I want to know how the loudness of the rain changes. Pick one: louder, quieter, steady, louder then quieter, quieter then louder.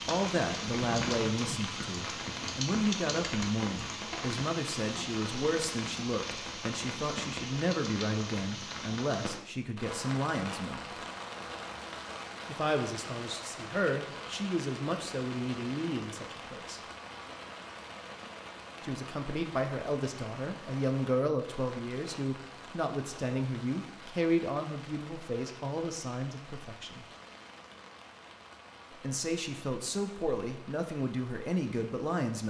quieter.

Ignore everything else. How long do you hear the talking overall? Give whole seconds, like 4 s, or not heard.
27 s.